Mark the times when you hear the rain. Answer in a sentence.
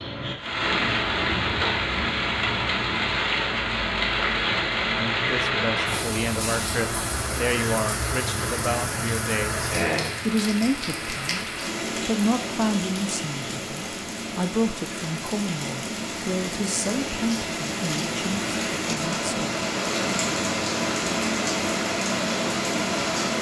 The rain can be heard from 0.0 to 23.3 s.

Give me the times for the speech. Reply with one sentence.
You can hear the speech from 5.2 to 19.5 s.